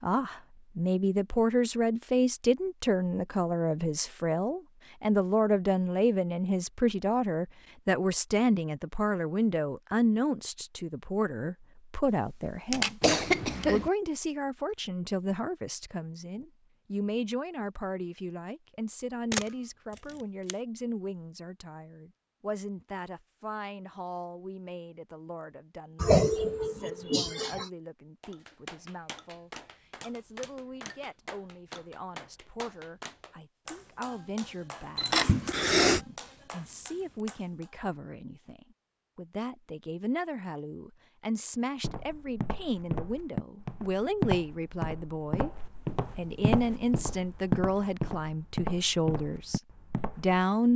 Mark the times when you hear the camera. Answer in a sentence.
You can hear the camera from 12.1 to 13.7 s, from 19.3 to 20.6 s and from 35.0 to 35.4 s.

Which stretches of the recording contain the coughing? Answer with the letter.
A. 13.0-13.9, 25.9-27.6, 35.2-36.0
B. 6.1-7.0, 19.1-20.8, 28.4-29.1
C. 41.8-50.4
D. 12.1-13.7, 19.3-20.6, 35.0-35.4
A.